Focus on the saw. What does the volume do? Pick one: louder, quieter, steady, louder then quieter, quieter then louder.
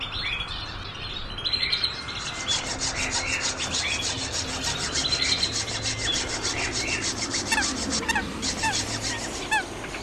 steady.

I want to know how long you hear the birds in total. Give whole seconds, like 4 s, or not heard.
10 s.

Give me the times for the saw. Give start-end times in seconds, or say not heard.
2.1-9.5.